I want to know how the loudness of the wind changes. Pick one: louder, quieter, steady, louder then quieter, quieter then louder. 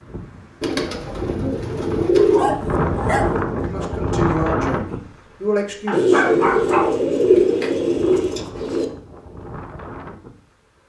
louder then quieter.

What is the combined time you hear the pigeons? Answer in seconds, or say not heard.
5 s.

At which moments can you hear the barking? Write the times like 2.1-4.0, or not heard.
2.1-3.4, 5.8-7.8.